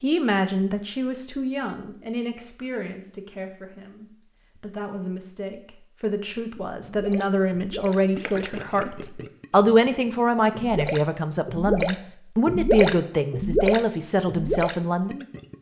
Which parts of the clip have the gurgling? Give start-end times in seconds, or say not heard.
6.3-15.5.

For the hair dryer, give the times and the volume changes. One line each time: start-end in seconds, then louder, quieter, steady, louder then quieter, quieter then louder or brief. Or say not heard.
not heard.